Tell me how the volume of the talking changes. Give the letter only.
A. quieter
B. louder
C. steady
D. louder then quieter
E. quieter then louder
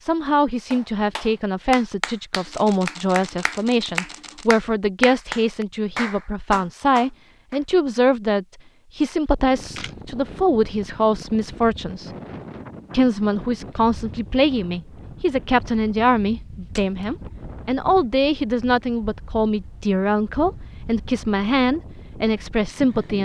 C.